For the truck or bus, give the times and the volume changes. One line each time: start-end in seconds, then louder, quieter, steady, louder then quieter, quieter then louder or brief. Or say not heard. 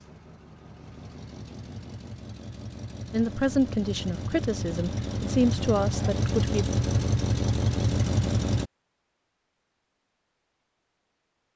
0.0-8.7 louder.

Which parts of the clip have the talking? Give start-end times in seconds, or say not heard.
3.1-6.7.